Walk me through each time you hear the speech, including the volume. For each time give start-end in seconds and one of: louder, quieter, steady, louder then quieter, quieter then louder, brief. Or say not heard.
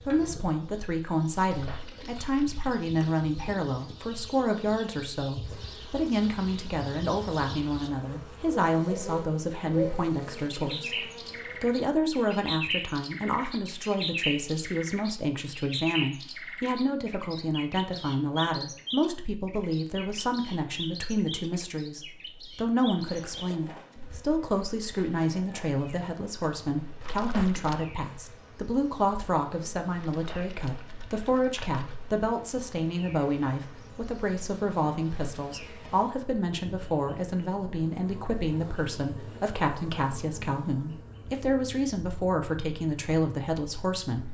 0.0-44.2 steady.